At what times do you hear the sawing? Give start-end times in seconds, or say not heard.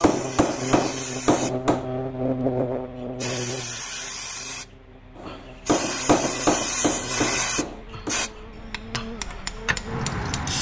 not heard.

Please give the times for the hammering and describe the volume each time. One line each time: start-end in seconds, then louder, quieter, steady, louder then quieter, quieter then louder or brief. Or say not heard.
0.0-1.9 brief
5.2-10.4 quieter then louder.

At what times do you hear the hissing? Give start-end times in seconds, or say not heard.
0.0-10.5.